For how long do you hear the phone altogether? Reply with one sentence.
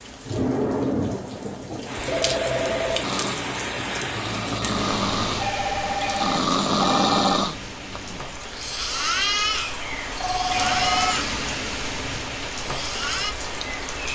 The phone can be heard for 4 seconds in total.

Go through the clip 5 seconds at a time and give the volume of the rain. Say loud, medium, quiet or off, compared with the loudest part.
loud, medium, loud.